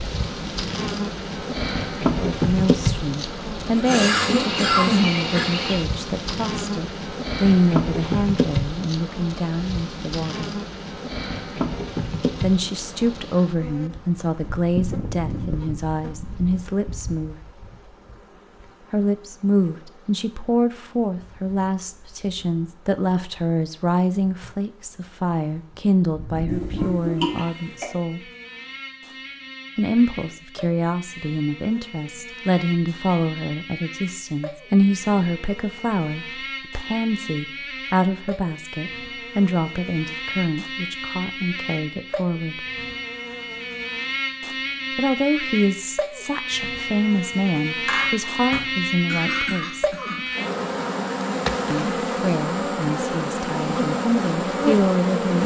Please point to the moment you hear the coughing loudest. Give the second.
5 s.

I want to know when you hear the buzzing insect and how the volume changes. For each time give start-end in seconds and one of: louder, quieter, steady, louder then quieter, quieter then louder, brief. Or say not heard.
0.0-55.4 quieter then louder.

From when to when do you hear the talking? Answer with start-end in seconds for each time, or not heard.
2.2-10.6, 12.4-17.4, 18.9-28.2, 29.8-42.6, 45.0-50.0, 51.7-55.4.